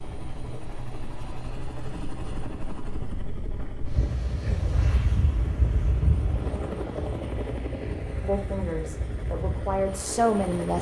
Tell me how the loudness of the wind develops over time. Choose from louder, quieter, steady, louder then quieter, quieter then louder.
louder then quieter.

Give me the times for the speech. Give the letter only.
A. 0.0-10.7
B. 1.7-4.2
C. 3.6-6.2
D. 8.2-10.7
D.